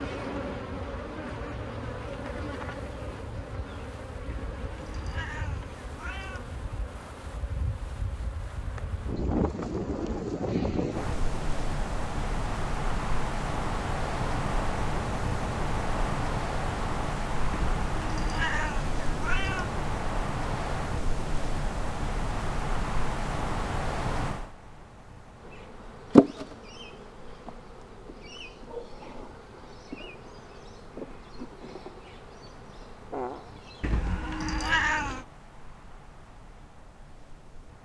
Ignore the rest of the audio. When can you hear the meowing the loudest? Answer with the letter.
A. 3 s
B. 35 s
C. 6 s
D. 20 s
B.